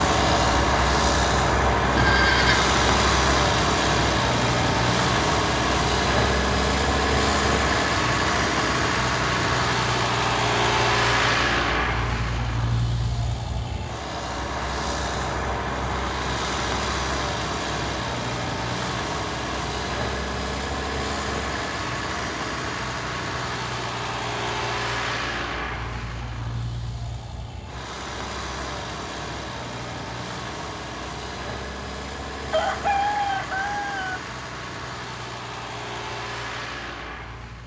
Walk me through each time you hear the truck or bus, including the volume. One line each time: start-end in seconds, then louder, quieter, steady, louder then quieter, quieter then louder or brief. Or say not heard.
0.0-37.6 quieter.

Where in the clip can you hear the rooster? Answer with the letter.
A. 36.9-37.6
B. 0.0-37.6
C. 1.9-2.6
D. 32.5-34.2
D.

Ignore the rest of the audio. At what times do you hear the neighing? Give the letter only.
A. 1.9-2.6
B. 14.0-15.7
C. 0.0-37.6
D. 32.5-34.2
A.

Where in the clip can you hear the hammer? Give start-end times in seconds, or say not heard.
not heard.